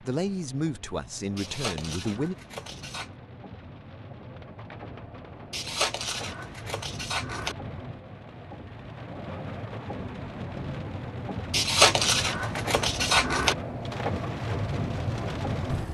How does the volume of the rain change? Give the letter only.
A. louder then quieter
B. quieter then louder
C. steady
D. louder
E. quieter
D.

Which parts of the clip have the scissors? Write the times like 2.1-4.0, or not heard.
1.4-3.1, 5.5-7.5, 11.5-13.6.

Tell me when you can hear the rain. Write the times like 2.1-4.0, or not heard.
0.0-15.8.